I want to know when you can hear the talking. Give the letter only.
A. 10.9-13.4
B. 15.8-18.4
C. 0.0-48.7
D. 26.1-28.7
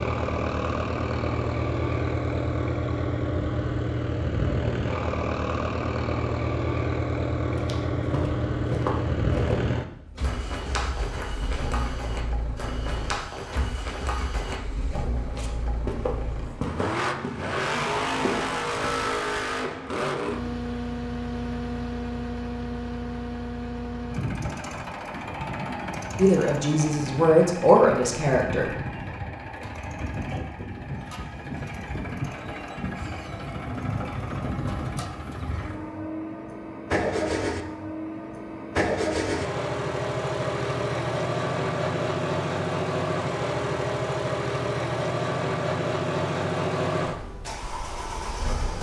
D.